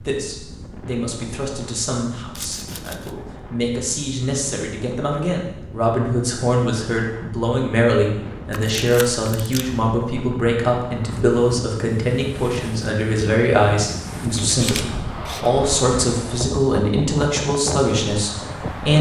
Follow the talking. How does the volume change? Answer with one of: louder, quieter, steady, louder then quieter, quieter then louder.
louder.